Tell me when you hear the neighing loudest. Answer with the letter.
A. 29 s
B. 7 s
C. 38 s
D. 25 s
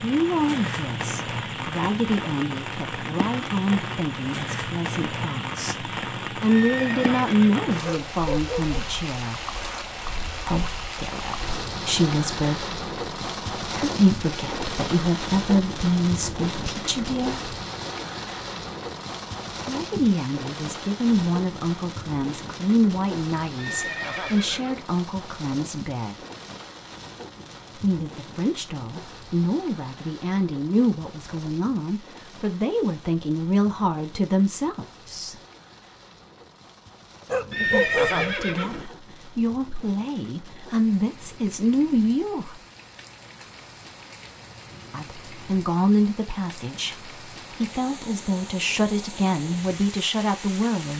C.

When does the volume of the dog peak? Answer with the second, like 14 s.
38 s.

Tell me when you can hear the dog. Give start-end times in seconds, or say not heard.
7.8-8.9, 37.2-38.4.